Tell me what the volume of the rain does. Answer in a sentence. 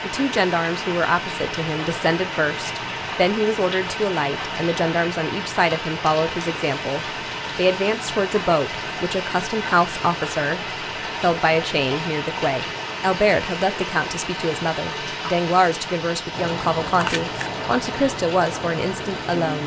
The loudness of the rain stays about the same.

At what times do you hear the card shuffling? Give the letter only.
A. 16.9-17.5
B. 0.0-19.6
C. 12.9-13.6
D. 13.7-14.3
A.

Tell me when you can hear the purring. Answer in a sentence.
The purring can't be heard in this clip.